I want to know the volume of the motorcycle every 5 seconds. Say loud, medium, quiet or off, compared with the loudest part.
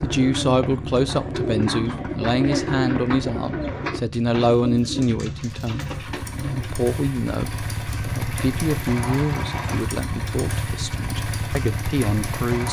medium, loud, loud.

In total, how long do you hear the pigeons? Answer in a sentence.
The pigeons can be heard for 7 seconds in total.